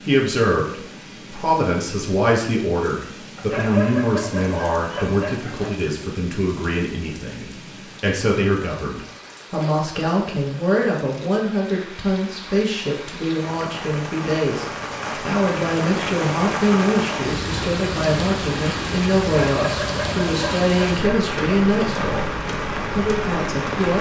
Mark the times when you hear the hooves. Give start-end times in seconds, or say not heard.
not heard.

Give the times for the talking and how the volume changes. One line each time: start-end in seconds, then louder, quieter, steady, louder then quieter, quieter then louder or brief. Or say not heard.
0.0-23.9 steady.